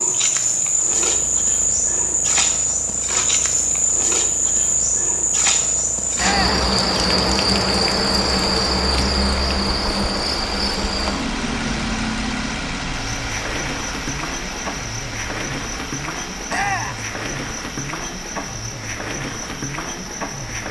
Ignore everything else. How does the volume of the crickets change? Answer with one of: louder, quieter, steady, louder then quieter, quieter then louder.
quieter.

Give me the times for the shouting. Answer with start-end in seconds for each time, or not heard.
6.2-6.7, 16.5-17.1.